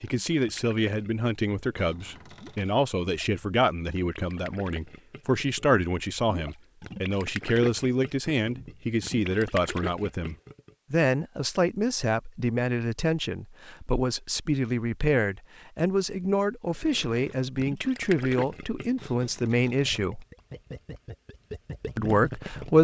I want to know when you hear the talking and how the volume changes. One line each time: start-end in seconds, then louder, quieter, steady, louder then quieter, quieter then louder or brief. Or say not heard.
0.0-20.2 steady
21.9-22.7 brief.